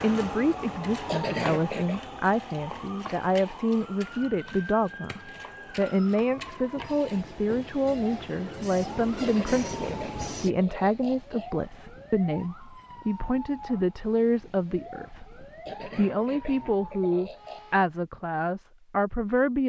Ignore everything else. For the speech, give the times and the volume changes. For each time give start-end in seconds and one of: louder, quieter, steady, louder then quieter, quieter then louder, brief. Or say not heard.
0.0-19.6 steady.